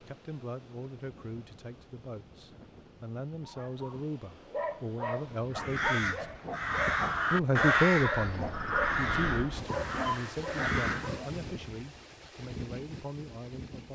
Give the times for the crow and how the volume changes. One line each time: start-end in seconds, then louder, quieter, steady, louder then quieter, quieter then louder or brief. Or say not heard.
5.5-11.2 louder then quieter.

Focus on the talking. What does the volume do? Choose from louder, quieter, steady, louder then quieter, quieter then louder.
louder then quieter.